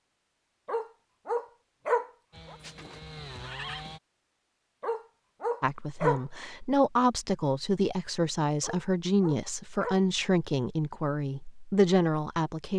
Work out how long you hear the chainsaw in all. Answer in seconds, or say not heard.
2 s.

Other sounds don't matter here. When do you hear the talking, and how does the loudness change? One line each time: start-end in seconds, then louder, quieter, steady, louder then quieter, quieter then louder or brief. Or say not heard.
5.6-12.7 steady.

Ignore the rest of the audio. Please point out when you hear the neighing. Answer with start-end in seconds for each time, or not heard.
2.5-3.9.